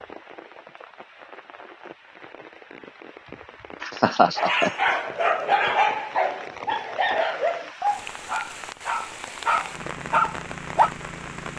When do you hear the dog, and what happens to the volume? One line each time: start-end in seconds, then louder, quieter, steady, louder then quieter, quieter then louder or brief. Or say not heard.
4.3-10.9 quieter then louder.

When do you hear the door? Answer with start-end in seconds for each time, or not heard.
not heard.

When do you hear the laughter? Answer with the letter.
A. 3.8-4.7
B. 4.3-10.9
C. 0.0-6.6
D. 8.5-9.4
A.